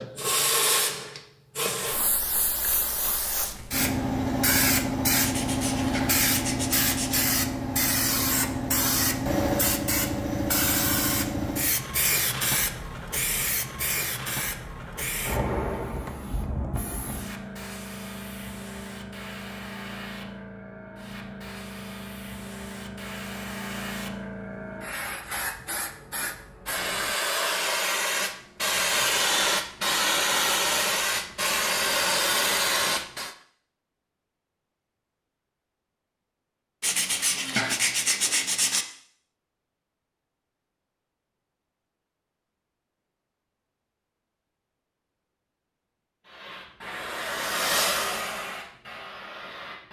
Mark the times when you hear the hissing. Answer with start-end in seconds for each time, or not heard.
0.0-33.4, 46.2-49.8.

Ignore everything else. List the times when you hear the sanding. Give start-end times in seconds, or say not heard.
5.2-7.2, 36.8-38.9.